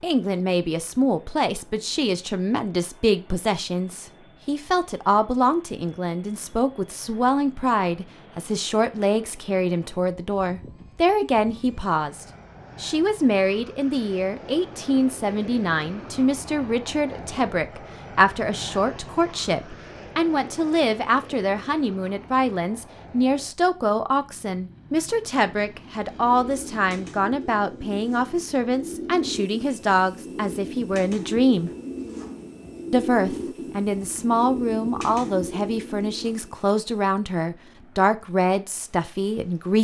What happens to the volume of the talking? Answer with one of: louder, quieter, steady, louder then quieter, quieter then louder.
steady.